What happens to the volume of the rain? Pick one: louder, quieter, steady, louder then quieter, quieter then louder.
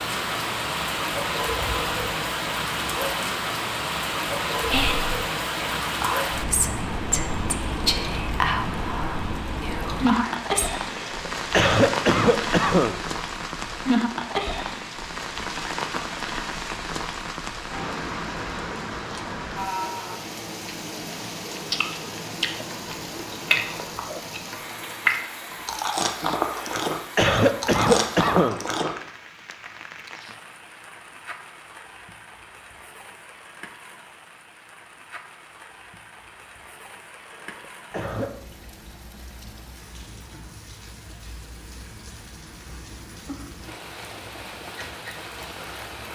quieter.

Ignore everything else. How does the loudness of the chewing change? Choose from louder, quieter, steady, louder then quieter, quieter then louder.
louder.